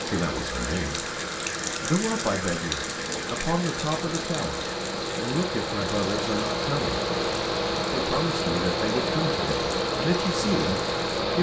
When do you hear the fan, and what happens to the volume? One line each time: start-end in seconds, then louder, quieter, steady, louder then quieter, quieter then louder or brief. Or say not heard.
0.0-11.3 louder.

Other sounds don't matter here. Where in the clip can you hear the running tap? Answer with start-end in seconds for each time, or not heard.
0.0-11.1.